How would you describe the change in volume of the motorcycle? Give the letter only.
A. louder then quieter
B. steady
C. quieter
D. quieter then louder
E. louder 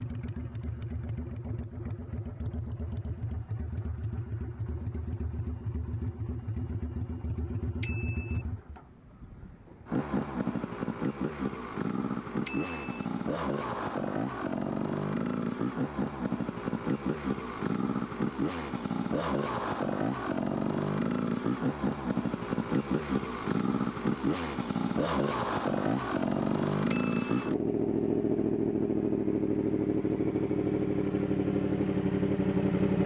E.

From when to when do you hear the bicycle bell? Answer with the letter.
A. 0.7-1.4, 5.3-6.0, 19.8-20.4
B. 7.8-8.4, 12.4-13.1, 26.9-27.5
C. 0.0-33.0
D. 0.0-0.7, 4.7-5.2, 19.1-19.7
B.